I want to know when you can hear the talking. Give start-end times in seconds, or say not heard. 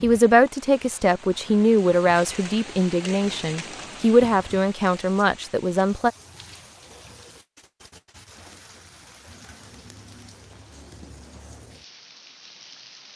0.0-6.1.